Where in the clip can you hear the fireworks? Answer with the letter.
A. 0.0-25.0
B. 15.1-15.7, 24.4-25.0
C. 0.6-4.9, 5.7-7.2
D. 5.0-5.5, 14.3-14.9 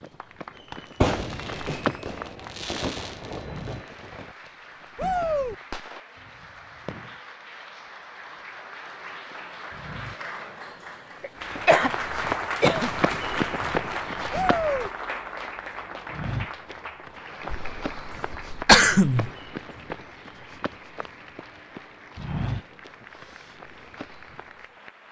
C.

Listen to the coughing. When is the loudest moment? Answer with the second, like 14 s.
19 s.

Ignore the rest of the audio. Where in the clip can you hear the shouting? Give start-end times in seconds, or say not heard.
5.0-5.5, 14.3-14.9.